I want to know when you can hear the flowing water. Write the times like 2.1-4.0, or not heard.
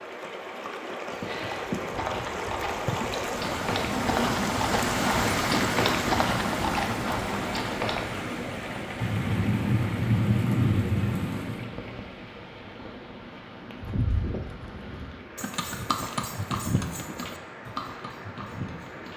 0.0-19.1.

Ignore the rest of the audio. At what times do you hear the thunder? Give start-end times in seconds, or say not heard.
9.0-11.7.